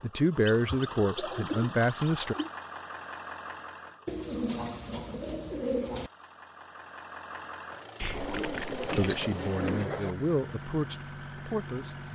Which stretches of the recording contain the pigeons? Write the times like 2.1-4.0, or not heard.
0.5-2.5, 4.0-6.1, 8.1-10.2.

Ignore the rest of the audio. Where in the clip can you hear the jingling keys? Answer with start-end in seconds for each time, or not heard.
8.0-9.3.